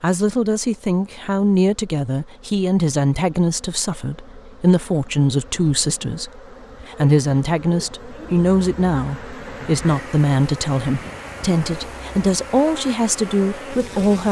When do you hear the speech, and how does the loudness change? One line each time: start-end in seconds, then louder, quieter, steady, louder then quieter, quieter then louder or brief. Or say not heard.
0.0-14.2 steady.